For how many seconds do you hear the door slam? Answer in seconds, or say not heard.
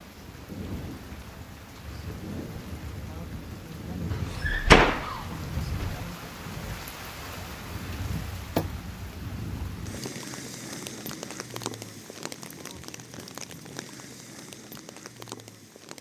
2 s.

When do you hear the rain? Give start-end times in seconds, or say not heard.
0.0-15.9.